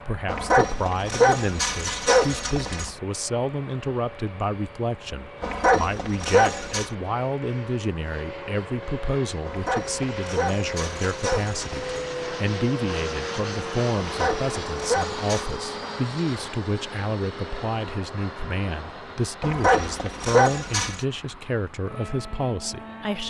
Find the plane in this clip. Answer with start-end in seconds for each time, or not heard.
0.0-23.2.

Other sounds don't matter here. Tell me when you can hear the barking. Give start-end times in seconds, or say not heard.
0.2-2.9, 5.4-6.9, 9.4-12.1, 14.0-15.6, 19.4-21.1.